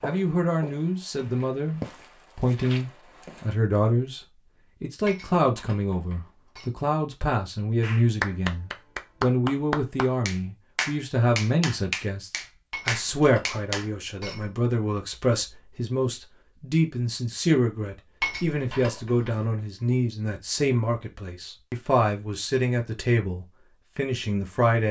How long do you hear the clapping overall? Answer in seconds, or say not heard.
6 s.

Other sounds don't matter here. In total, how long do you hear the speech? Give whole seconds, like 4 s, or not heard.
25 s.